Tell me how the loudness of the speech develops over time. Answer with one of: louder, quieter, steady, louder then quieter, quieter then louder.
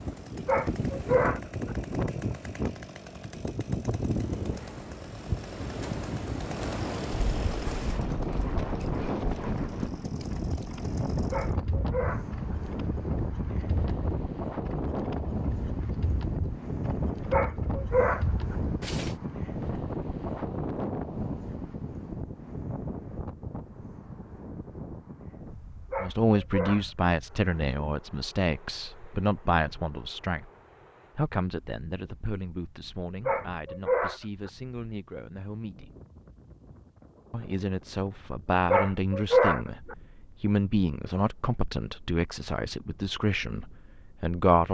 quieter then louder.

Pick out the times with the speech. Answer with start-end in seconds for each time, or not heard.
26.0-30.5, 31.1-35.9, 37.3-44.6.